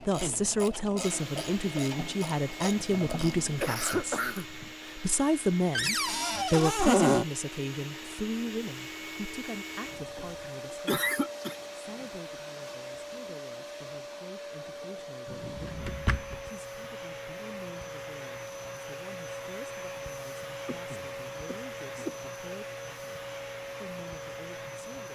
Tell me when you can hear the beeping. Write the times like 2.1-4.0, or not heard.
not heard.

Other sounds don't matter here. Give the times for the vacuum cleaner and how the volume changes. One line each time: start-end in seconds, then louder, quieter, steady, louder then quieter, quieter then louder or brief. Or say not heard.
0.0-25.0 steady.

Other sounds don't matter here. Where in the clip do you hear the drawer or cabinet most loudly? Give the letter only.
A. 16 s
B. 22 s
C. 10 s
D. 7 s
D.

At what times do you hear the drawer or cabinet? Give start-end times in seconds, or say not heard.
5.8-7.2, 15.2-16.4.